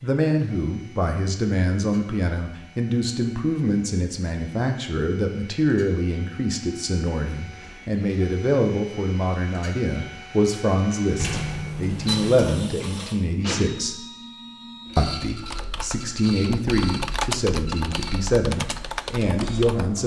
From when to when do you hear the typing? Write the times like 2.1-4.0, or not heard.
15.4-19.9.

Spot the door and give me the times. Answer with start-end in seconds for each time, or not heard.
11.2-12.5.